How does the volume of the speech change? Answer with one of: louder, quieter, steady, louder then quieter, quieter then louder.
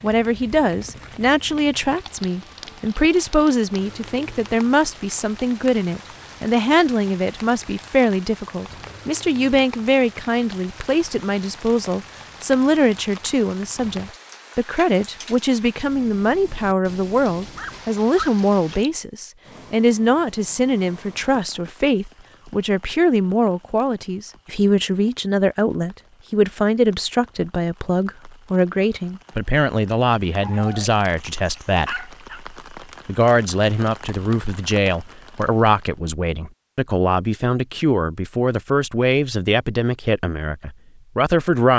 steady.